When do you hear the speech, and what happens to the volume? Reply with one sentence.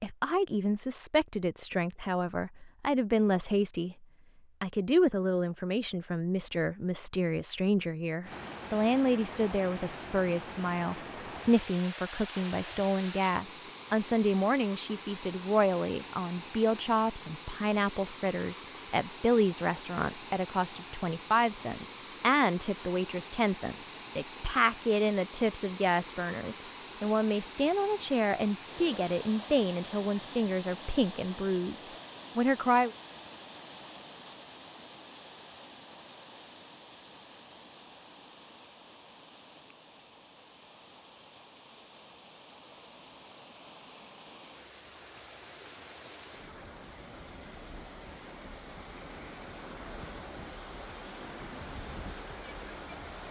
The speech can be heard from 0.0 to 32.9 s, at a steady volume.